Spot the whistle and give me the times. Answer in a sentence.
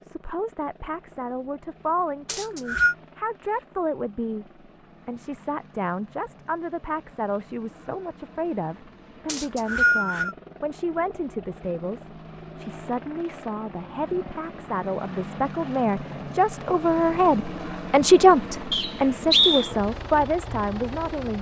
You can hear the whistle from 2.2 to 3.0 s, from 9.2 to 10.3 s and from 18.7 to 19.7 s.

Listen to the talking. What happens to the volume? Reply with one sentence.
The volume of the talking goes up.